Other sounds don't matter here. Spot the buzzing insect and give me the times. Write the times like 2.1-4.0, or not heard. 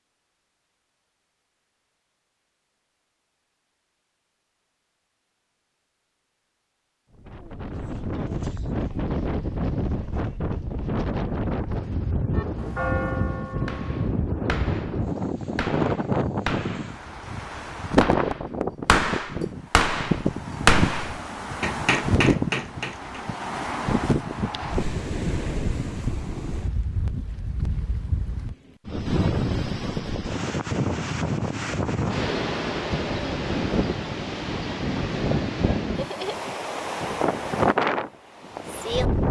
not heard.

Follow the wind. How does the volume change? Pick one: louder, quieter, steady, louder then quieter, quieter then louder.
steady.